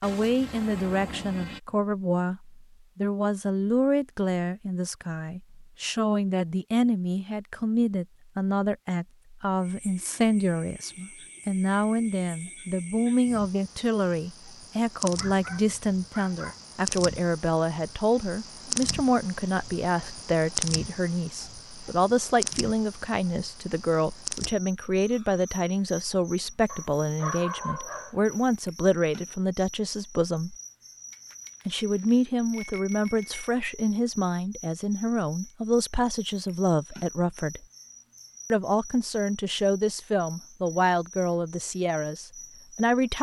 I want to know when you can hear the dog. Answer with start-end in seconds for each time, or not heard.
15.1-16.6, 26.6-28.4.